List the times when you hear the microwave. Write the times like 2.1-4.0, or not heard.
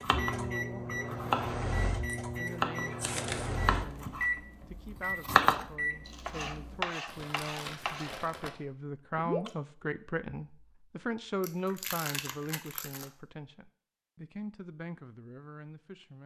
0.0-6.9.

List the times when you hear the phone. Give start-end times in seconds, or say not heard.
not heard.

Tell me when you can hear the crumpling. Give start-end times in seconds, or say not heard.
2.0-3.5, 7.0-8.5, 11.4-13.1.